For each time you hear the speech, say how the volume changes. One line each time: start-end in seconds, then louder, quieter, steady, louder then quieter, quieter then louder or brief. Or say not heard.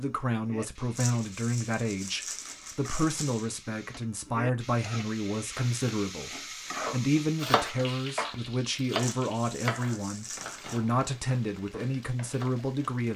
0.0-13.1 steady.